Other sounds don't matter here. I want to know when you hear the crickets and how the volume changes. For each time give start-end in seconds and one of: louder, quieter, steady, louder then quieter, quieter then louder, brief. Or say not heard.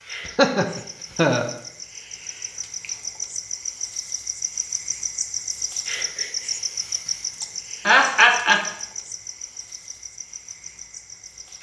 0.0-11.5 louder then quieter.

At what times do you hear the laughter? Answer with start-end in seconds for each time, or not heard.
0.2-1.5, 7.4-8.6.